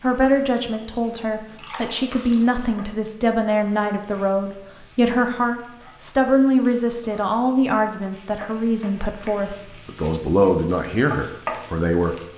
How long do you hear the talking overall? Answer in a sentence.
You can hear the talking for 12 seconds altogether.